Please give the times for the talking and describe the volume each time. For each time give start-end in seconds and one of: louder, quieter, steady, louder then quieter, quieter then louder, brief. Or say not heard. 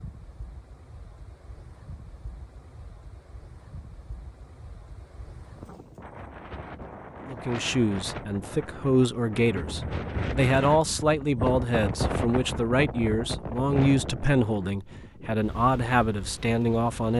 7.2-17.1 steady.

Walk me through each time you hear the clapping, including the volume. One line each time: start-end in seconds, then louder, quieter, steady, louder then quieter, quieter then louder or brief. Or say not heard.
not heard.